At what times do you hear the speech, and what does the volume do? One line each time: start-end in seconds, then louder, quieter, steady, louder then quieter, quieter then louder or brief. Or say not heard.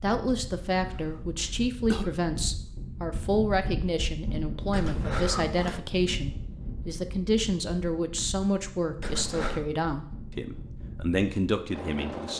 0.0-12.3 steady.